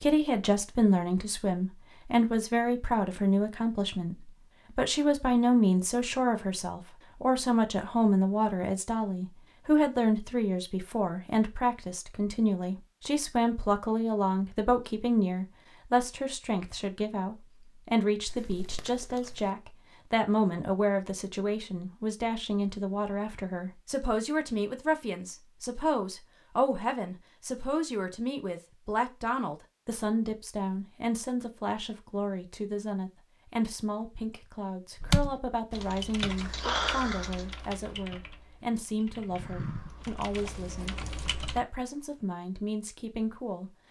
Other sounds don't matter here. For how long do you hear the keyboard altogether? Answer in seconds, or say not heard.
7 s.